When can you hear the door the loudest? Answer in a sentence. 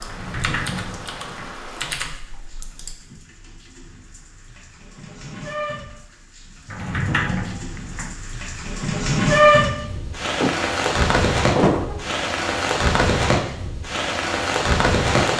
The loudest moment of the door is at 12 seconds.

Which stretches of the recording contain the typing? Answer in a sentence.
You can hear the typing from 0.0 to 3.0 s.